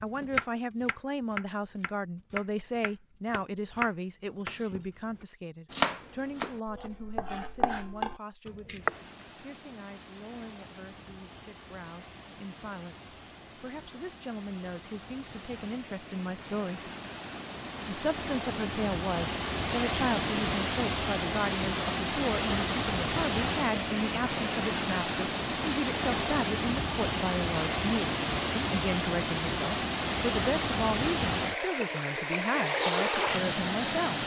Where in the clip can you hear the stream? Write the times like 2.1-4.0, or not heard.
8.8-34.2.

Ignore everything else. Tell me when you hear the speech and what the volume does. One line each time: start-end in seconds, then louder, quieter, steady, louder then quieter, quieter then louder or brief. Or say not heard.
0.0-16.9 quieter then louder
17.9-34.2 steady.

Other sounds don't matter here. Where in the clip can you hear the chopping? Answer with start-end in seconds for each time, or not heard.
0.0-9.0.